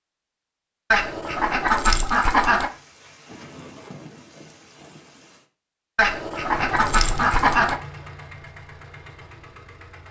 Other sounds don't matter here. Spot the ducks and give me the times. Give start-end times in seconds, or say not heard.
0.9-2.7, 6.0-7.8.